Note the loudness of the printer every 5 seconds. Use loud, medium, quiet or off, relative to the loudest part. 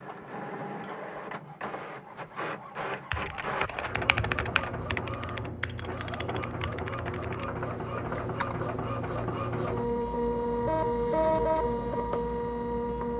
medium, medium, loud.